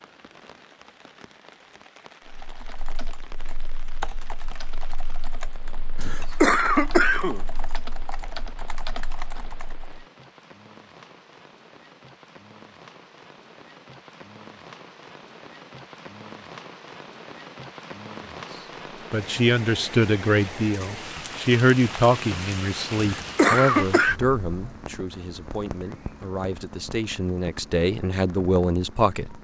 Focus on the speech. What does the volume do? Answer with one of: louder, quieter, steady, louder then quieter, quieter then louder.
quieter then louder.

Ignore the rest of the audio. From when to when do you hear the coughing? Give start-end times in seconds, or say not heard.
6.0-7.4, 22.9-24.1.